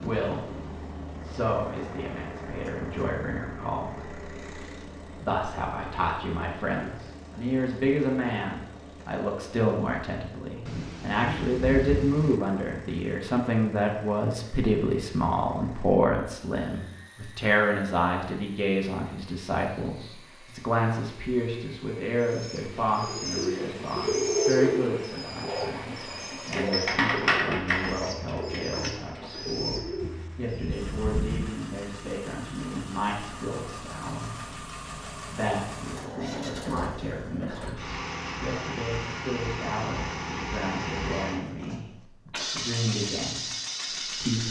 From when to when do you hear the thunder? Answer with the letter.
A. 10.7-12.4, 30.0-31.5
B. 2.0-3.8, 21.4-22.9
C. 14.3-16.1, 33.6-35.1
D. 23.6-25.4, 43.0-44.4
A.